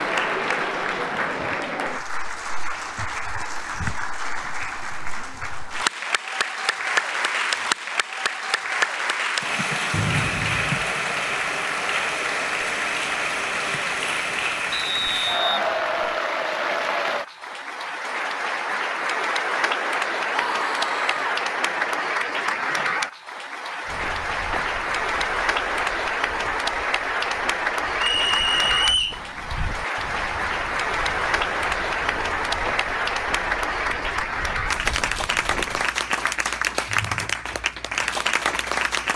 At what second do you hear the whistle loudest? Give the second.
29 s.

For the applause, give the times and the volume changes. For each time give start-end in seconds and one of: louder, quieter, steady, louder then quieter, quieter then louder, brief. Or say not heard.
0.0-39.1 steady.